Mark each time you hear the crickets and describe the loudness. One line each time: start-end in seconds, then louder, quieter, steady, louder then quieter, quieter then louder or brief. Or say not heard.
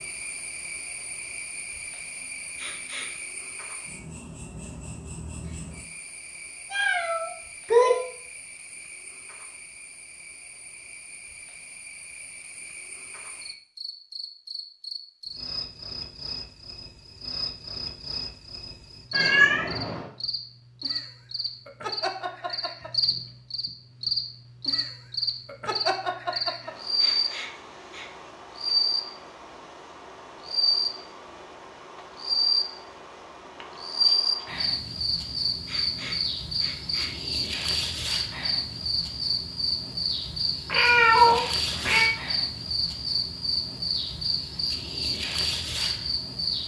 0.0-46.6 louder.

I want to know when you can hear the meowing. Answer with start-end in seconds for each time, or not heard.
6.7-8.0, 19.1-20.1, 40.6-42.1.